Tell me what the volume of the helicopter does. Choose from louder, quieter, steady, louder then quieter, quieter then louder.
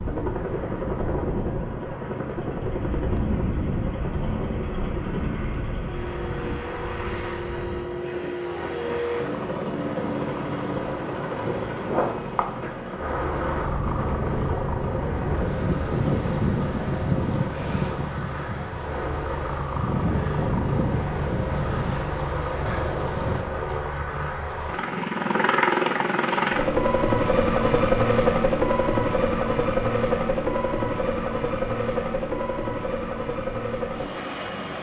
louder.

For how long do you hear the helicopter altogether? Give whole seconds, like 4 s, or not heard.
35 s.